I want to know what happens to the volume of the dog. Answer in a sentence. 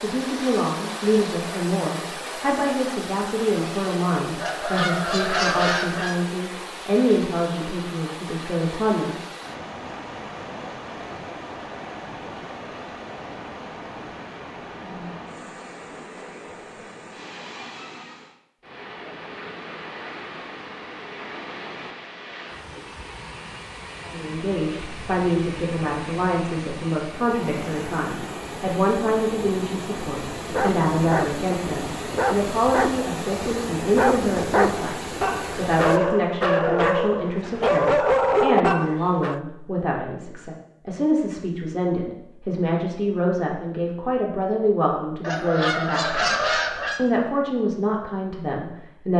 The volume of the dog goes up.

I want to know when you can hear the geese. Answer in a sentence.
You can hear the geese from 4.4 to 6.2 s and from 45.2 to 47.0 s.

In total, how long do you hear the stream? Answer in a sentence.
You can hear the stream for 36 seconds altogether.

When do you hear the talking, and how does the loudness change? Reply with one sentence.
The talking can be heard from 0.0 to 9.2 s, at a steady volume; and from 24.0 to 49.1 s, at a steady volume.